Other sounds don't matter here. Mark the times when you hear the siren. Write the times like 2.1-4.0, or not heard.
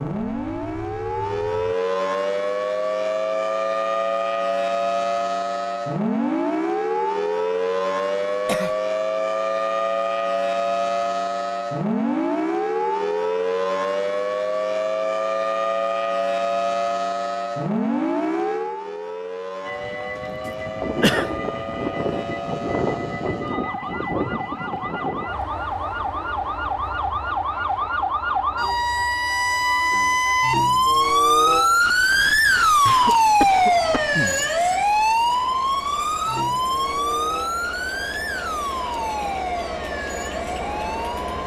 0.0-41.4.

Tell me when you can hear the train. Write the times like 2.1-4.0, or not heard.
0.2-1.8, 19.6-41.4.